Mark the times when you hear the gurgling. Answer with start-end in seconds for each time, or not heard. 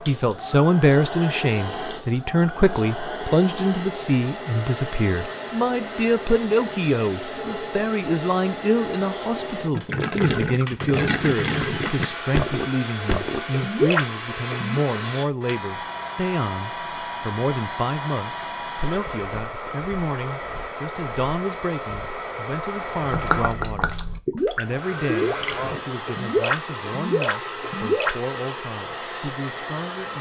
9.8-14.8, 23.1-28.1.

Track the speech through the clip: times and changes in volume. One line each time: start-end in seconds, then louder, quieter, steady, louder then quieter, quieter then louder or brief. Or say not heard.
0.1-30.1 quieter.